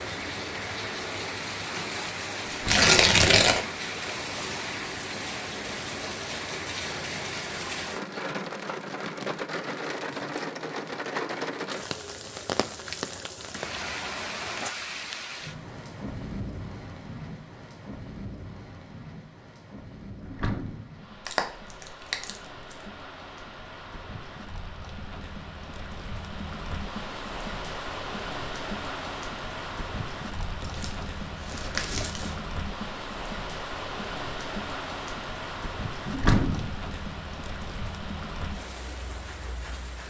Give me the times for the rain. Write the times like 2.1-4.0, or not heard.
0.0-40.0.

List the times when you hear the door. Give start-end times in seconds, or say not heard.
2.5-2.9, 20.2-20.9, 36.0-36.7.